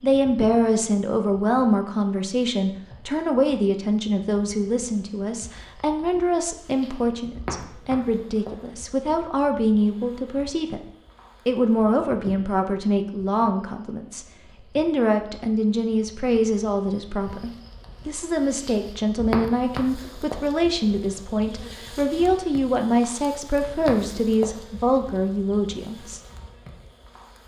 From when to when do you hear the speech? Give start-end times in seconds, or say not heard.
0.0-10.8, 11.4-26.2.